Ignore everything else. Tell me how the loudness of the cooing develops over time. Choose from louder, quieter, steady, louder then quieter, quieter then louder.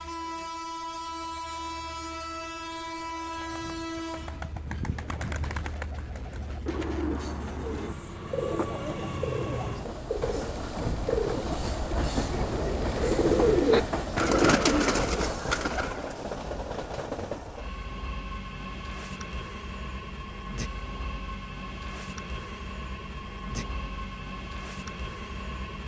louder.